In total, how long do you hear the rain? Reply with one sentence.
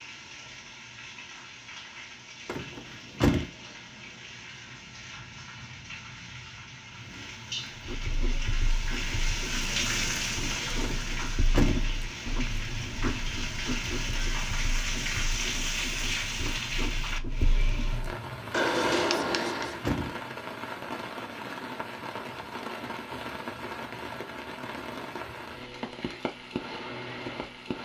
You can hear the rain for 28 seconds altogether.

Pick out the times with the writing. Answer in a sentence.
You can hear the writing from 7.8 to 19.9 s.